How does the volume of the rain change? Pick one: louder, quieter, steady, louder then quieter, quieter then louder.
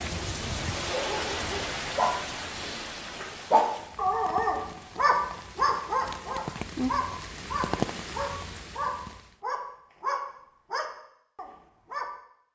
quieter then louder.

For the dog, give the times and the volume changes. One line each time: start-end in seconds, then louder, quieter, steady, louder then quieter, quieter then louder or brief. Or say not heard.
0.7-12.1 louder then quieter.